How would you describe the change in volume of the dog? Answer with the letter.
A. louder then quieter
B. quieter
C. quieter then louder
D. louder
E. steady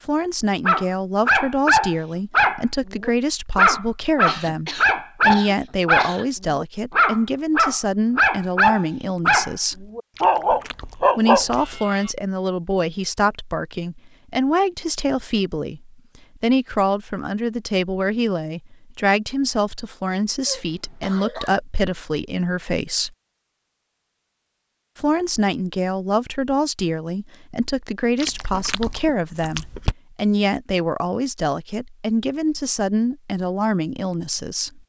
E.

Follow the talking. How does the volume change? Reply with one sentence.
The loudness of the talking stays about the same.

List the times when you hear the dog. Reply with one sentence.
The dog can be heard from 0.7 to 12.1 s.